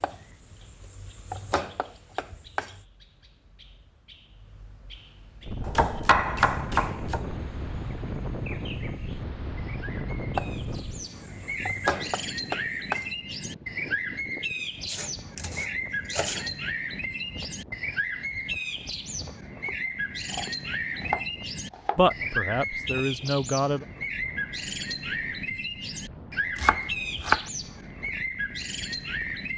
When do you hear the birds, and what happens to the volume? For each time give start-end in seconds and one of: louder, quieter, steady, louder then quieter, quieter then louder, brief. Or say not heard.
0.0-29.5 louder.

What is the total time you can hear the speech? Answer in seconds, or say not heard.
2 s.